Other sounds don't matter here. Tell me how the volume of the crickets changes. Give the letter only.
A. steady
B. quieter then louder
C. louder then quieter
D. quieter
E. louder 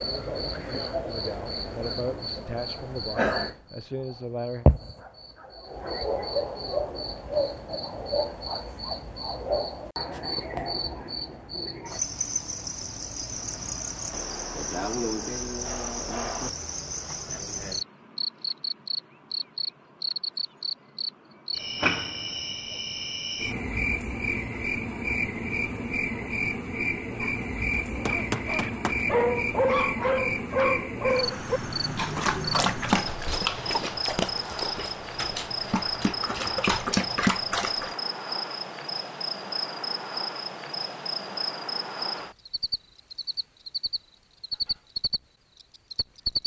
A.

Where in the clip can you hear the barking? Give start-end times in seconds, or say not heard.
27.7-38.0.